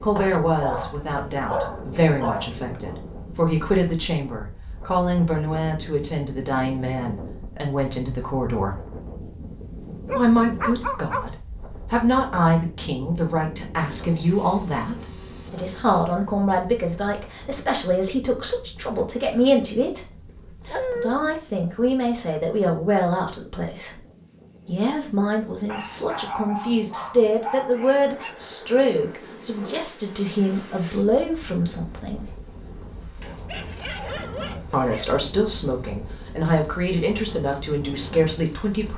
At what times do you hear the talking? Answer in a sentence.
The talking can be heard from 0.0 to 8.8 s, from 10.2 to 24.0 s, from 24.6 to 32.3 s and from 34.7 to 38.9 s.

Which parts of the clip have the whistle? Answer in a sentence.
The whistle can't be heard in this clip.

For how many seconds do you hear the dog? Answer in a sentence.
The dog can be heard for 9 seconds in total.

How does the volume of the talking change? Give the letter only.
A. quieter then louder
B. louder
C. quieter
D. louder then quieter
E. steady
E.